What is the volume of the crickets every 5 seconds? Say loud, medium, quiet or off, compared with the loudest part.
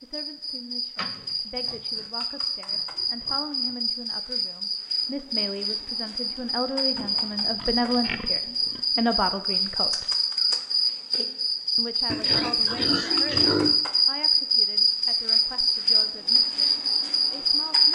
medium, medium, loud, loud.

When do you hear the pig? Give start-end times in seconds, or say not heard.
0.9-3.8, 7.0-8.8, 12.1-13.8.